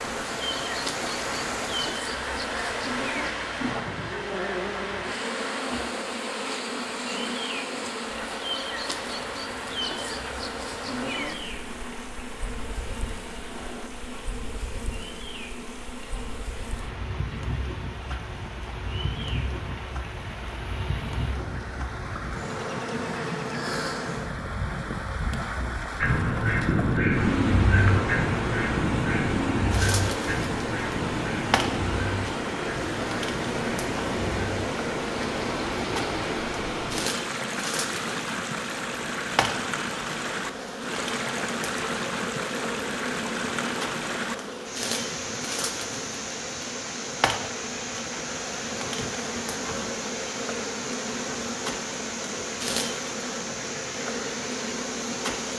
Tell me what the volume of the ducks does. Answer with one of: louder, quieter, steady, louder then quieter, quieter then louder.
quieter.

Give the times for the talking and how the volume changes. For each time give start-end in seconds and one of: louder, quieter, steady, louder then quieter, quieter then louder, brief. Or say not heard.
not heard.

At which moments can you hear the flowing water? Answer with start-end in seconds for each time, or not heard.
0.0-55.5.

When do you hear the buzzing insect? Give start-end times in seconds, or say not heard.
0.0-55.5.